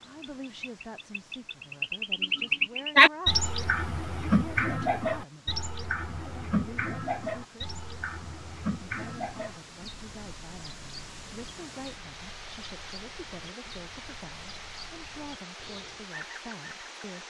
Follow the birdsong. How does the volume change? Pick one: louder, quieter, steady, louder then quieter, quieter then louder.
quieter.